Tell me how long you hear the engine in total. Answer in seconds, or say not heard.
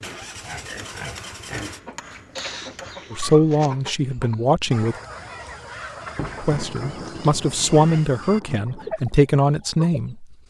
2 s.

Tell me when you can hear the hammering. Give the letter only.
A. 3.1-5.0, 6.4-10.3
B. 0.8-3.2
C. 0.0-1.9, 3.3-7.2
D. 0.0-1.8
B.